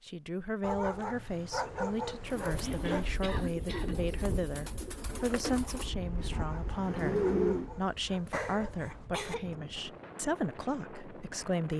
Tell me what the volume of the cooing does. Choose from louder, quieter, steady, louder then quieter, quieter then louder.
louder.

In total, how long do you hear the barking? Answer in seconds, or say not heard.
5 s.